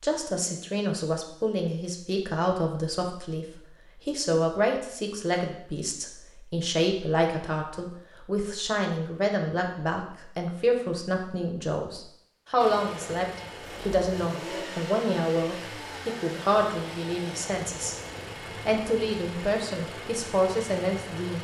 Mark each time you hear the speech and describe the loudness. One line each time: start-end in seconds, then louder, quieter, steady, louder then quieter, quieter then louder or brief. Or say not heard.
0.0-17.9 steady
18.6-21.4 brief.